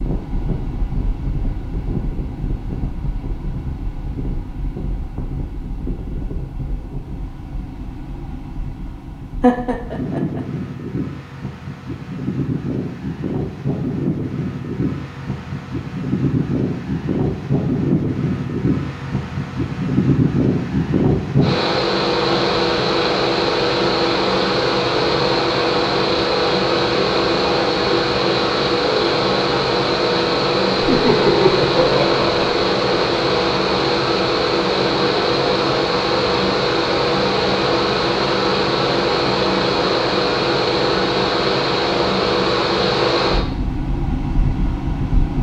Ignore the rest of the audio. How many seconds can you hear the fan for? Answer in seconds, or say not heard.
45 s.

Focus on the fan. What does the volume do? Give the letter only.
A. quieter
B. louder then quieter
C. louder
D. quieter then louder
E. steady
C.